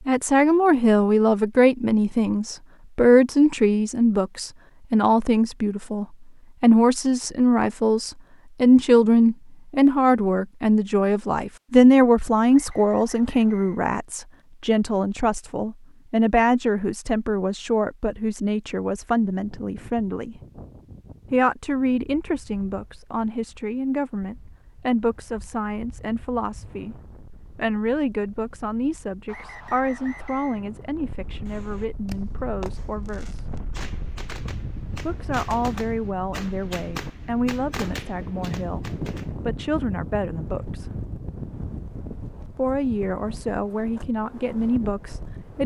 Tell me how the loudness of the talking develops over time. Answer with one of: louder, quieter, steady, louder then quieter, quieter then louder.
quieter.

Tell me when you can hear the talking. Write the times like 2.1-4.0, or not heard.
0.1-20.4, 21.3-33.5, 35.0-40.9, 42.5-45.6.